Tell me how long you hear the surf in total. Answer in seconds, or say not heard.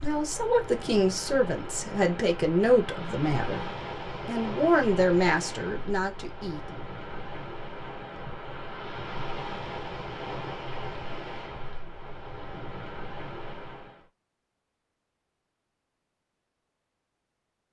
14 s.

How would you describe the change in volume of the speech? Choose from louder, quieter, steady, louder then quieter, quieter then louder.
steady.